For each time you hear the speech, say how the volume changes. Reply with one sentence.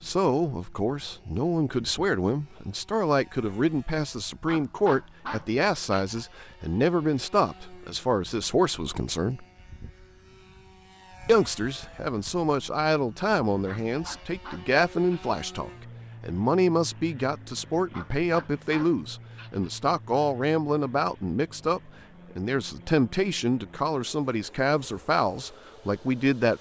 The speech can be heard from 0.0 to 9.4 s, at a steady volume; and from 11.2 to 26.5 s, at a steady volume.